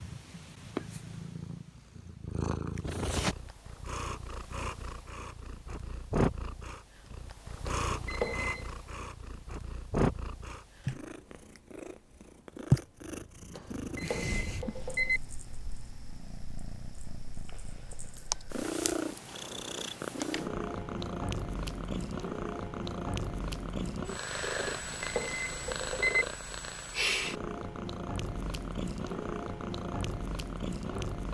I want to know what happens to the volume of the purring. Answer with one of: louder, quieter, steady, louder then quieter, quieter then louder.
steady.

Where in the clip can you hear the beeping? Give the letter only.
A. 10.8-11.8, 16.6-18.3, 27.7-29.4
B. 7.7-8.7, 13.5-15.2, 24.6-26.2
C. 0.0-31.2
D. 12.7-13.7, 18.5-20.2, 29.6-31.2
B.